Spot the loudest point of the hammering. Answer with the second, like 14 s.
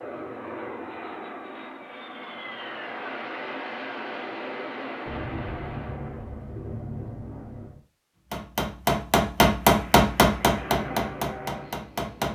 10 s.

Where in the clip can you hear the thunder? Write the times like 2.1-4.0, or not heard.
5.0-7.8.